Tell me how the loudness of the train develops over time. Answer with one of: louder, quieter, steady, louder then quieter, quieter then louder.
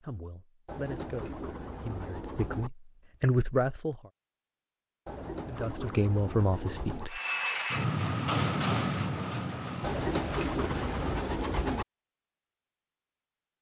quieter.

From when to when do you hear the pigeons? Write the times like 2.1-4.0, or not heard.
0.7-2.7, 5.0-7.0, 9.8-11.8.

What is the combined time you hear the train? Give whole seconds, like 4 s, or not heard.
4 s.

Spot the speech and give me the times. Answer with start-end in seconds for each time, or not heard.
0.0-4.0, 5.5-7.2.